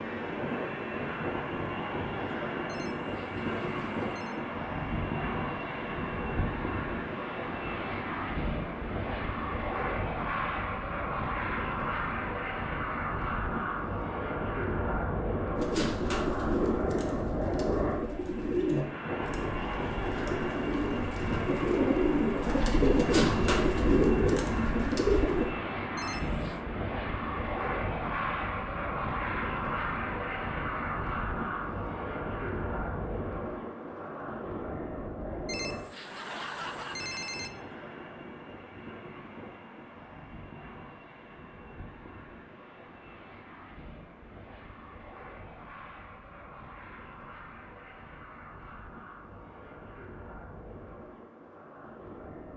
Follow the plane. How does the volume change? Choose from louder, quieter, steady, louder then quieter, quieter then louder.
quieter.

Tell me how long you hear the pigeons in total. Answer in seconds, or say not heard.
10 s.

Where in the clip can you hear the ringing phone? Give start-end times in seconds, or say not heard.
2.6-4.4, 25.9-26.6, 35.5-37.5.